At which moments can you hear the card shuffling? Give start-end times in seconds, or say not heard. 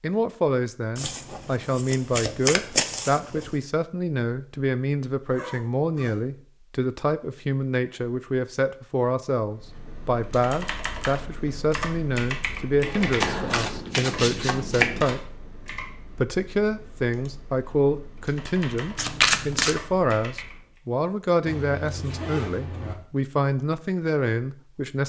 0.9-3.5, 13.2-15.1, 18.9-19.8.